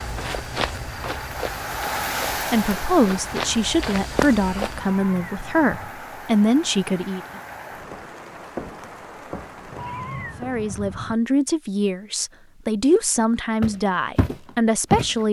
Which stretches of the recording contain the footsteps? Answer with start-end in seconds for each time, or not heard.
0.0-5.0, 13.6-15.2.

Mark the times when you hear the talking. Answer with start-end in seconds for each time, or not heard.
2.5-7.2, 10.4-15.2.